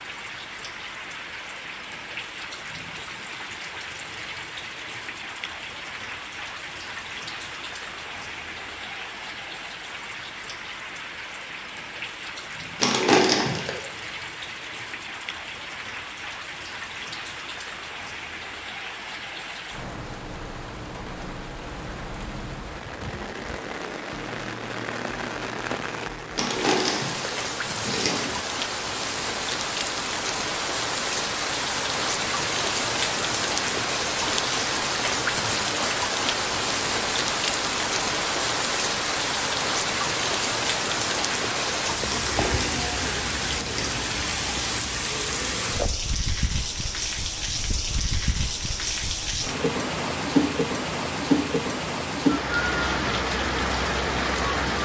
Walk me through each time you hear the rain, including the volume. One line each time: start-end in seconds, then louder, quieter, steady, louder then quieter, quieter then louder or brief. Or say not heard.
0.0-54.8 louder.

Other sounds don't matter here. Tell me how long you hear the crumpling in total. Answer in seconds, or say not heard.
5 s.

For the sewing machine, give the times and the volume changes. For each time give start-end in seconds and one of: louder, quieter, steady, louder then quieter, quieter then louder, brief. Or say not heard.
not heard.